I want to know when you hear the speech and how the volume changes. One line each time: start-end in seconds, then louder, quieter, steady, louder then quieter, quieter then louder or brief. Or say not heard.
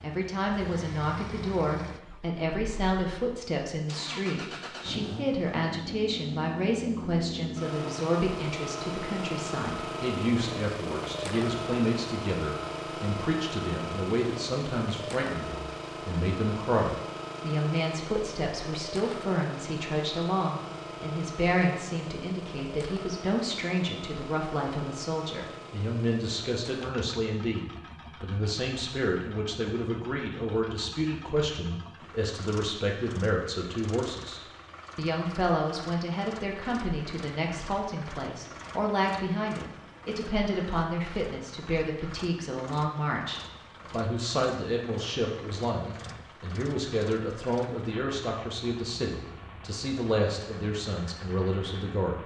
0.0-52.2 steady.